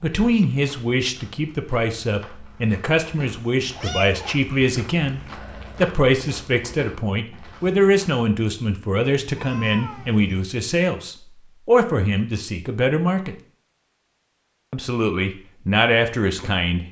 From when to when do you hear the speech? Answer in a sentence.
The speech can be heard from 0.0 to 13.3 s and from 14.7 to 16.8 s.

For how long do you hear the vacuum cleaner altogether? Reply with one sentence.
You can't hear the vacuum cleaner here.